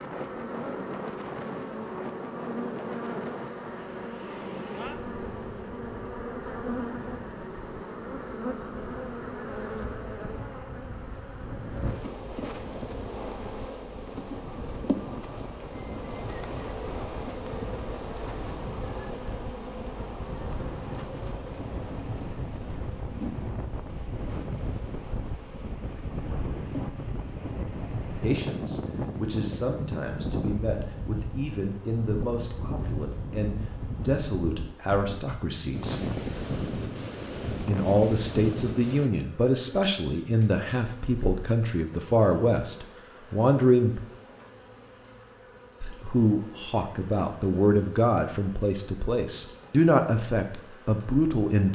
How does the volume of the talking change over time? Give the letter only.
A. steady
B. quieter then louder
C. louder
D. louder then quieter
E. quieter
C.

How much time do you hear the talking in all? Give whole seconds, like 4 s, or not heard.
20 s.